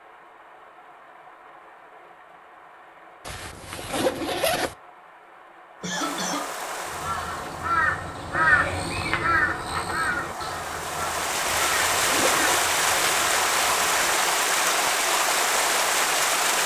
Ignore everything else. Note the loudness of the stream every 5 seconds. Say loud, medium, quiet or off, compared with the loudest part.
quiet, quiet, loud, loud.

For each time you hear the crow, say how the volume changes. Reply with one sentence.
You can hear the crow from 6.8 to 14.2 s, getting quieter.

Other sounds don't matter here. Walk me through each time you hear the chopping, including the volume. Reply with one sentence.
The chopping can't be heard in this clip.